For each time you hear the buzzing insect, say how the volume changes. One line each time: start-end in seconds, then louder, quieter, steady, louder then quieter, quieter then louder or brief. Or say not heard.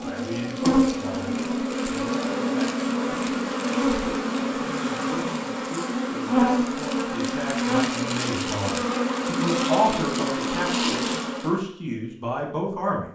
0.0-11.6 steady.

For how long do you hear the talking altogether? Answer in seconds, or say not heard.
13 s.